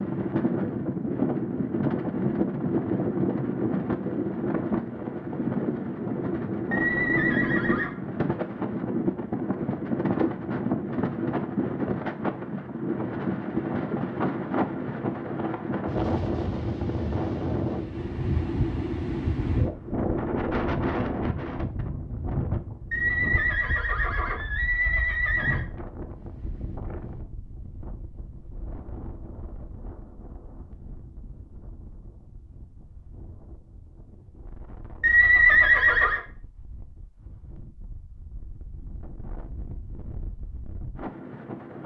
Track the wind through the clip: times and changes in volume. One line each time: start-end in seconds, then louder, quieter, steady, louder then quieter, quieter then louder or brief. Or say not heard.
0.0-41.8 quieter.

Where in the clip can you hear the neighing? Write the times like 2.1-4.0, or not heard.
6.7-7.9, 22.9-25.6, 35.0-36.2.